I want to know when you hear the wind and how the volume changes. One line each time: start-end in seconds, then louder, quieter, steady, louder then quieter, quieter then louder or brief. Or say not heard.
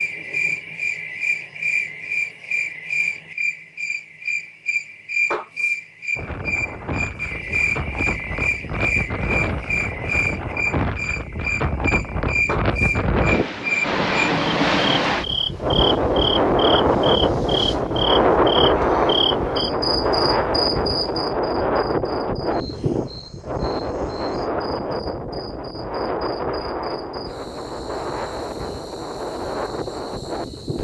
6.2-30.7 louder then quieter.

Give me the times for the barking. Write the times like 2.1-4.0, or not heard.
not heard.